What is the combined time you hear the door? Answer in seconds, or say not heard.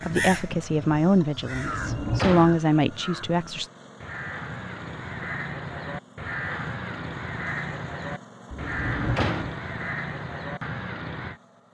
2 s.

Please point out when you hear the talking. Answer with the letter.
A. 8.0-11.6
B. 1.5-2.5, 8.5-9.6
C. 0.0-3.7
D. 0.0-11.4
C.